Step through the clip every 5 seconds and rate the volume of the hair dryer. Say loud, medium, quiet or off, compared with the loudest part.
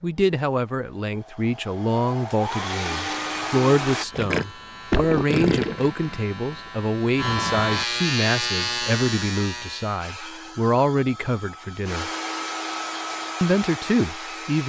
loud, off, loud.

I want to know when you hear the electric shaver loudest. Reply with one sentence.
The loudest moment of the electric shaver is at 8 seconds.